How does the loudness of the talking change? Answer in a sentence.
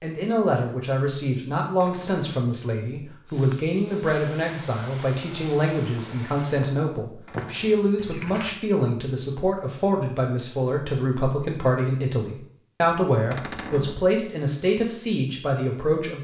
The loudness of the talking stays about the same.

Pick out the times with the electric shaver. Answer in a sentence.
The electric shaver can't be heard in this clip.